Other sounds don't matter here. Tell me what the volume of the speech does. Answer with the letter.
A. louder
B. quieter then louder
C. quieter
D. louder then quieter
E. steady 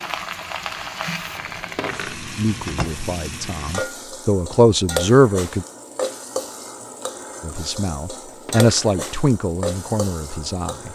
D.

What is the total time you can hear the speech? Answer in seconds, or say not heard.
7 s.